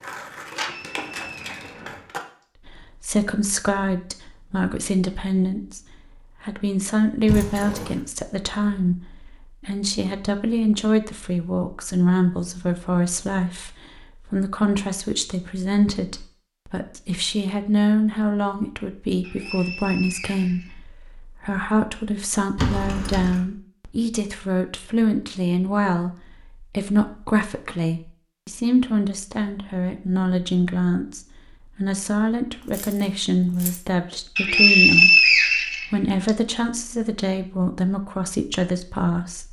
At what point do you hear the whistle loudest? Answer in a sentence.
The volume of the whistle peaks at 35 seconds.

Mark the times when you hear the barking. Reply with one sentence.
The barking can't be heard in this clip.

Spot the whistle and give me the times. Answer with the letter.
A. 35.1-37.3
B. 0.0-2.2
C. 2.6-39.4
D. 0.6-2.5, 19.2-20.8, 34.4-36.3
D.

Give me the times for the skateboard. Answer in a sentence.
The skateboard can be heard from 0.0 to 2.2 s.